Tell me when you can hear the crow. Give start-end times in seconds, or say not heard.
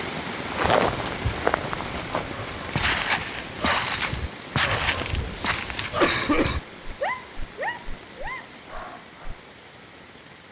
not heard.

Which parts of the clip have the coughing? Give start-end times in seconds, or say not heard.
6.0-6.6.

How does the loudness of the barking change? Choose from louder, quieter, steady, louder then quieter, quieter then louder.
louder then quieter.